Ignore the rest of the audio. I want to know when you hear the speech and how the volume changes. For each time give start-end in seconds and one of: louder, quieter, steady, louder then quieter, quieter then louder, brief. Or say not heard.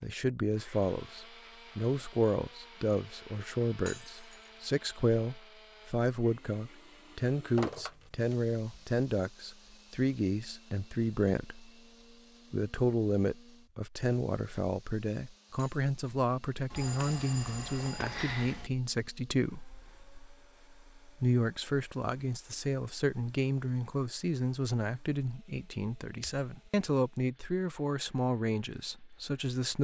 0.0-11.7 steady
12.5-29.8 steady.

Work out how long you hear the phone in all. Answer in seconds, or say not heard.
3 s.